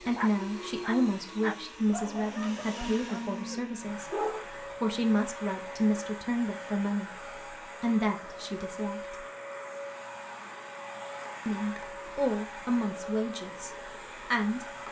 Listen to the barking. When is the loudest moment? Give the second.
4 s.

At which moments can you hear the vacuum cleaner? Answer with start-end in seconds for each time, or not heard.
0.0-14.8.